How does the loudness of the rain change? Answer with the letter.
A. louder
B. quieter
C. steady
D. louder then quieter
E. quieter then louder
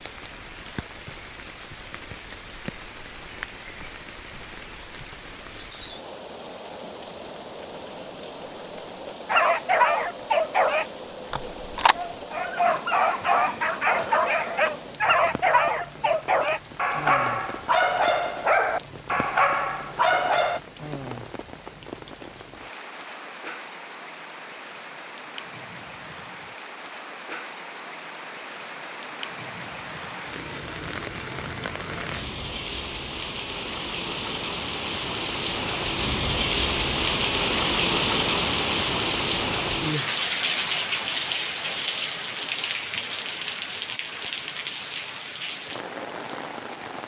A.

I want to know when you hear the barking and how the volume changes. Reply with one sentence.
You can hear the barking from 9.2 to 20.6 s, at a steady volume.